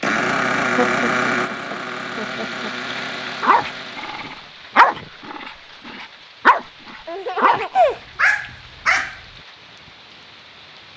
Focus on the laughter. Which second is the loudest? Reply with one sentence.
The loudest moment of the laughter is at 8 seconds.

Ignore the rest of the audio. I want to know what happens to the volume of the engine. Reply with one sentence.
The volume of the engine goes down.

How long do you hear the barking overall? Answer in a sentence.
You can hear the barking for 6 seconds altogether.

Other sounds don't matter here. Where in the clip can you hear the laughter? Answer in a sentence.
You can hear the laughter from 0.8 to 2.7 s and from 7.0 to 8.0 s.